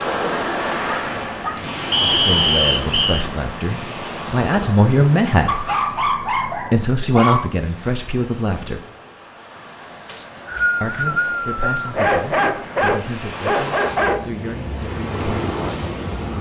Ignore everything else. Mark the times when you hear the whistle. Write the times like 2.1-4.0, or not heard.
1.9-3.2, 10.1-12.0.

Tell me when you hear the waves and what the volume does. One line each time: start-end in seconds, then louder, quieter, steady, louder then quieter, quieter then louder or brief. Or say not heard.
0.0-16.3 quieter then louder.